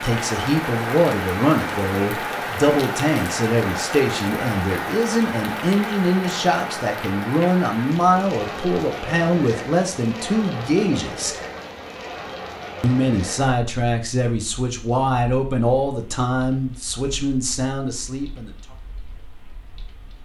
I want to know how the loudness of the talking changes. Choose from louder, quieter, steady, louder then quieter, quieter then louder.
steady.